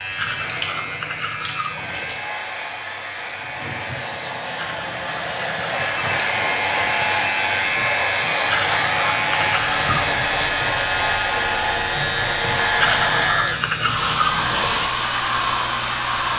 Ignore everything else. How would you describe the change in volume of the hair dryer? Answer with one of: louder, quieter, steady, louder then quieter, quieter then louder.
louder.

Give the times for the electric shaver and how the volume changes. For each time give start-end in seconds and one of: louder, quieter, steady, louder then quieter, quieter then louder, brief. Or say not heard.
0.0-16.3 louder.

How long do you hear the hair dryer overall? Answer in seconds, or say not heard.
16 s.